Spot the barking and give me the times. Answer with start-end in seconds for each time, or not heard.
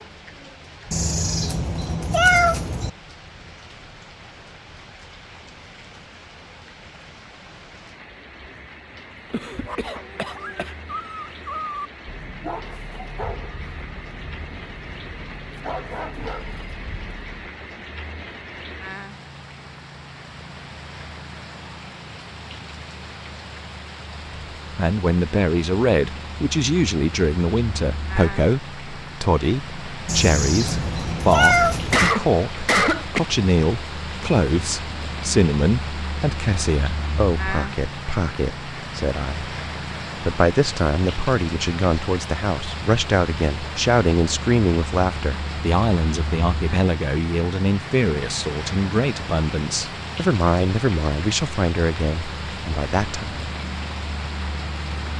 9.7-17.5.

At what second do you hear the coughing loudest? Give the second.
32 s.